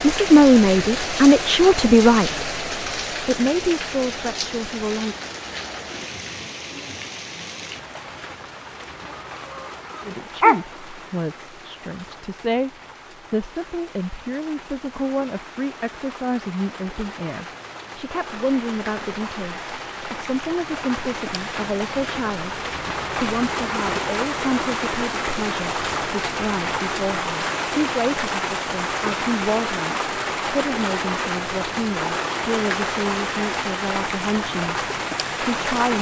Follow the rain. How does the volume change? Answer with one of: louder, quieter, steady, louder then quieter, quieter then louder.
quieter then louder.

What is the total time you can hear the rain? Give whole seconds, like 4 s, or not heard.
36 s.